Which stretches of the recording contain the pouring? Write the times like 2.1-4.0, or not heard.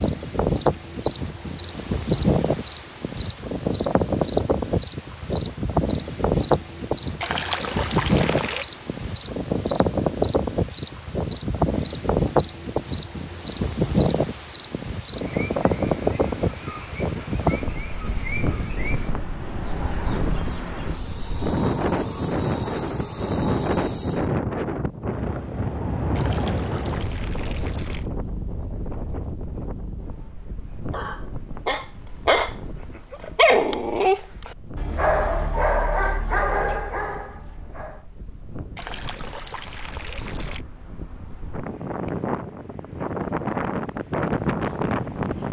7.2-8.7, 26.1-28.1, 38.8-40.6.